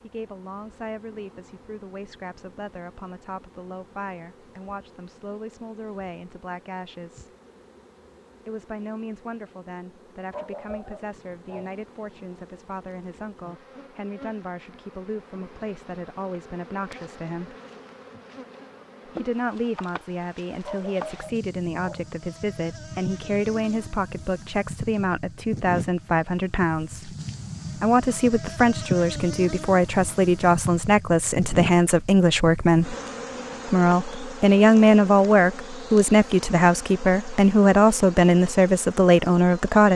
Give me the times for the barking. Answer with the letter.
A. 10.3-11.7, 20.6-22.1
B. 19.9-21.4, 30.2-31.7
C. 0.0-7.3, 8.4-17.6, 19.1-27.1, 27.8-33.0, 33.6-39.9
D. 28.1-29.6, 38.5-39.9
A.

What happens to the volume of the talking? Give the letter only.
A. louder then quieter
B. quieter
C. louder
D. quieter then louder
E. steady
C.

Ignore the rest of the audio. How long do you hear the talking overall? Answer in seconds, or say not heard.
36 s.